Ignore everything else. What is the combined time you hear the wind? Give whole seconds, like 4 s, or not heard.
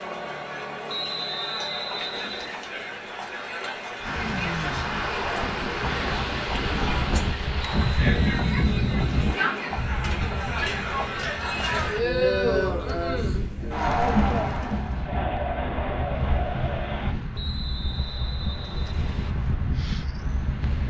17 s.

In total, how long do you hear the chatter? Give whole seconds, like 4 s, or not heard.
17 s.